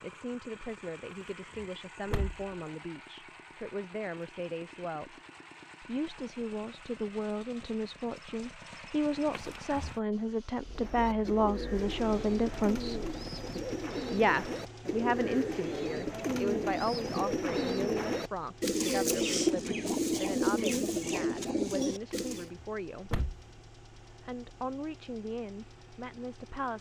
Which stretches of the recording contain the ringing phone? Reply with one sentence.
You can't hear the ringing phone here.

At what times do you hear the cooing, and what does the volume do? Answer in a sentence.
You can hear the cooing from 10.7 to 22.5 s, getting louder.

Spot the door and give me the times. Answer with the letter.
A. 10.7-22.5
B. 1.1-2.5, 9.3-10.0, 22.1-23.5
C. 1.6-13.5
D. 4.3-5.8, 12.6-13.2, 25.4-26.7
B.